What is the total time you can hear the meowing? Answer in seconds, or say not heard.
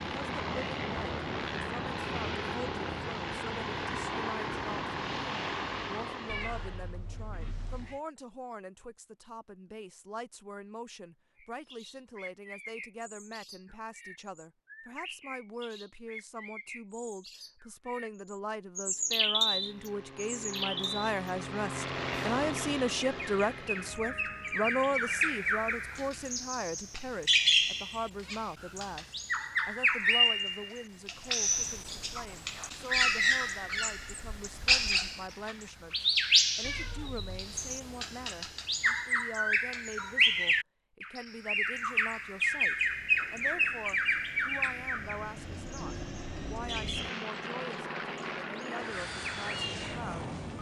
3 s.